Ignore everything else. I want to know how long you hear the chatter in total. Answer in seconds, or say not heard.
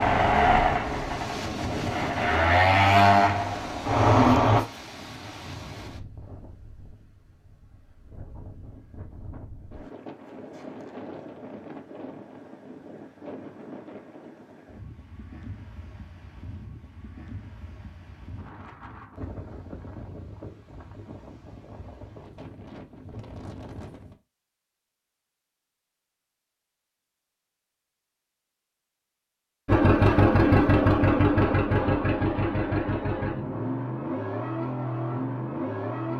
not heard.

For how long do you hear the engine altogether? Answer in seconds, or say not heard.
11 s.